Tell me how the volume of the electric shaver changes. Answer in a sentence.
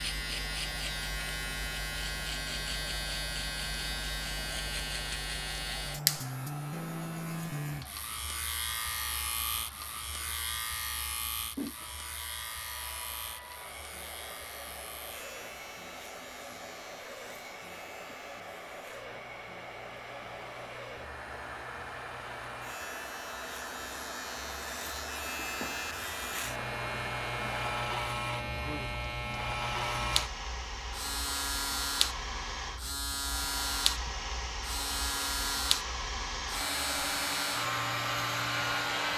The volume of the electric shaver goes down, then up.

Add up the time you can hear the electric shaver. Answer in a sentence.
You can hear the electric shaver for 39 seconds altogether.